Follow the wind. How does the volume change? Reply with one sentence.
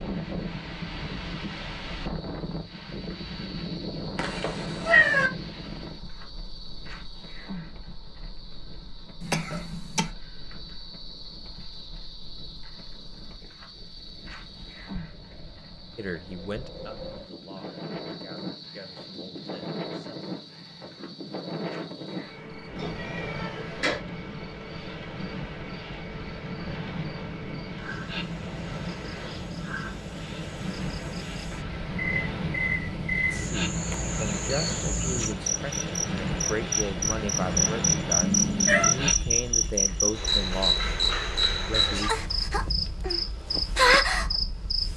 The volume of the wind goes down, then up.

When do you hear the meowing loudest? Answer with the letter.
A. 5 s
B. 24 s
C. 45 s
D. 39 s
A.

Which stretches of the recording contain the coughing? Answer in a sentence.
You can hear the coughing from 9.2 to 10.1 s.